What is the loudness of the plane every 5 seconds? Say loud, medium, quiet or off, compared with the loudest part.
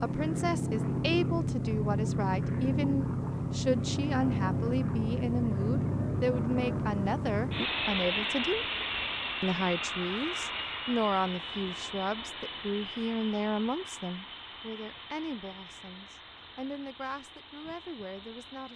loud, loud, medium, quiet.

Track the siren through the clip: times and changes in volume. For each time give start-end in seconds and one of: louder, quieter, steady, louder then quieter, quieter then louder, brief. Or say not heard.
not heard.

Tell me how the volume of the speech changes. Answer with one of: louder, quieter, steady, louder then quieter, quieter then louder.
quieter.